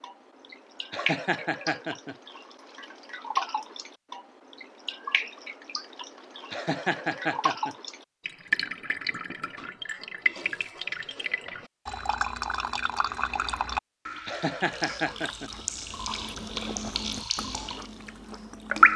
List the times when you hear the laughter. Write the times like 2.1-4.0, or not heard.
0.9-2.1, 6.5-7.8, 14.2-15.5.